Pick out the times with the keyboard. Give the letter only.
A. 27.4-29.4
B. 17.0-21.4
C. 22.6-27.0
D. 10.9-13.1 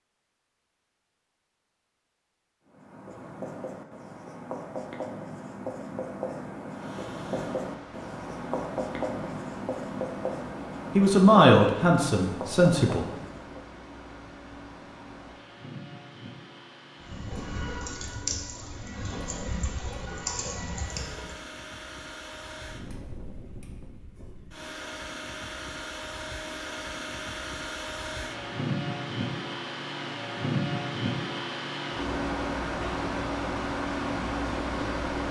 B.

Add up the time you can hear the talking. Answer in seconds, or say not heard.
2 s.